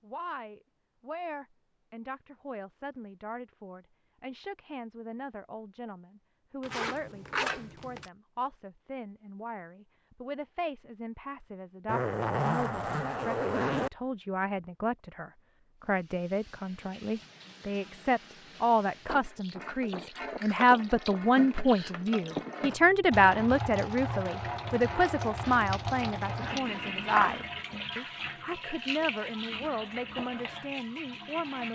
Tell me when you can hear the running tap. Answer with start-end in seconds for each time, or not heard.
15.8-31.7.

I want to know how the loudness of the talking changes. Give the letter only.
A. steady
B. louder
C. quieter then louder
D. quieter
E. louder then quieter
E.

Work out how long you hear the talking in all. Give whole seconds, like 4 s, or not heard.
32 s.